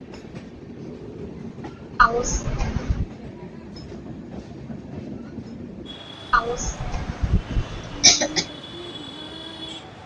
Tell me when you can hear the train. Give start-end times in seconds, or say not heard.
0.0-10.0.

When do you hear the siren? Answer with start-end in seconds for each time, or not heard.
not heard.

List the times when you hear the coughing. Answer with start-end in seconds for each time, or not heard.
1.9-3.0, 6.3-8.4.